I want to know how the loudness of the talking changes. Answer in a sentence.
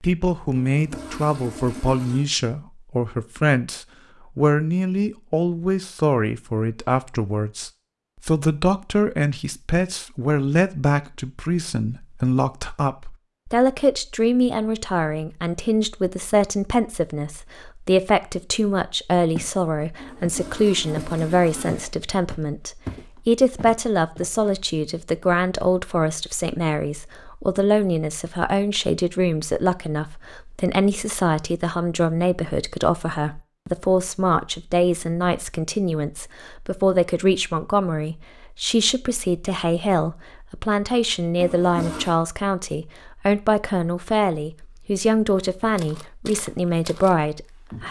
The volume of the talking stays about the same.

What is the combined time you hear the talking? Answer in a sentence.
The talking can be heard for 48 seconds in total.